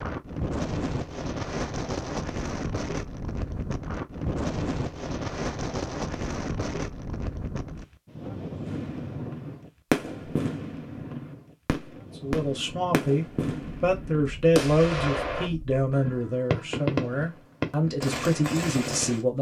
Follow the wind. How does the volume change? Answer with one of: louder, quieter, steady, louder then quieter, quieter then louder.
quieter.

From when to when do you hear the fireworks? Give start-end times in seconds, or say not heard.
8.7-19.2.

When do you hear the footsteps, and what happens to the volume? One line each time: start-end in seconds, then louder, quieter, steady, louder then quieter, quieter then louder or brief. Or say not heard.
not heard.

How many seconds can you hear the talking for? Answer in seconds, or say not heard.
7 s.